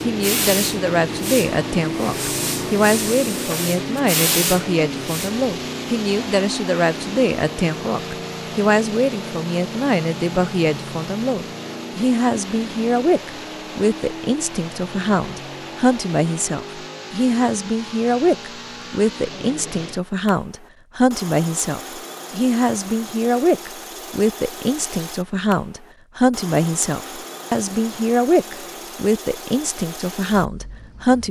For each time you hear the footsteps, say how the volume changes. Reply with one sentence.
The footsteps can't be heard in this clip.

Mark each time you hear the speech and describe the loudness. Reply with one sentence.
You can hear the speech from 0.0 to 31.2 s, at a steady volume.